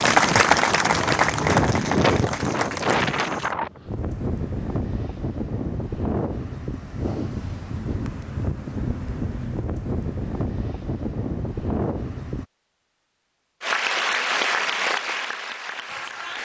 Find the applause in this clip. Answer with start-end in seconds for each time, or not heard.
0.0-3.5, 13.6-16.4.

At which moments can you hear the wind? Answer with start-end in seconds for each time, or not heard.
0.0-12.4.